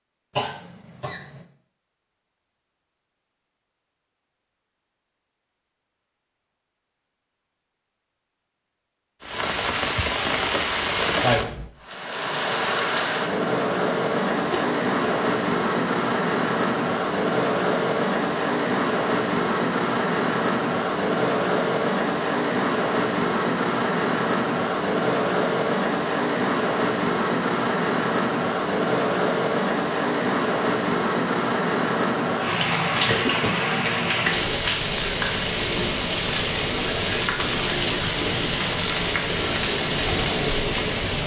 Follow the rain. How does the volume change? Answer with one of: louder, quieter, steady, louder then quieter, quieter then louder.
steady.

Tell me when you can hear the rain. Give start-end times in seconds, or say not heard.
9.2-41.2.